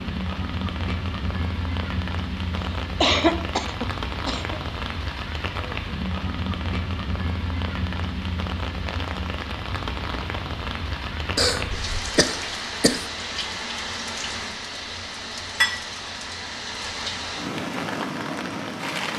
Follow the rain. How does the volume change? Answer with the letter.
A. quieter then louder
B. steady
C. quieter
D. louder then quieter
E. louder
B.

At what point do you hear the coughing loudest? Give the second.
3 s.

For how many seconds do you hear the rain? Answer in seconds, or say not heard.
19 s.